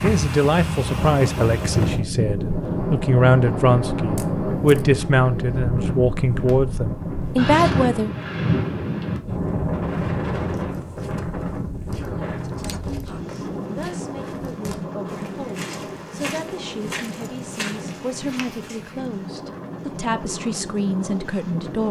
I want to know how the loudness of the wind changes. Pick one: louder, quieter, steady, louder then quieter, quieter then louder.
quieter.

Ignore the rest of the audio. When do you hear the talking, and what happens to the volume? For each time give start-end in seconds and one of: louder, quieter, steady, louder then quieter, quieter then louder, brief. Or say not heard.
0.0-8.1 steady
11.9-21.8 louder.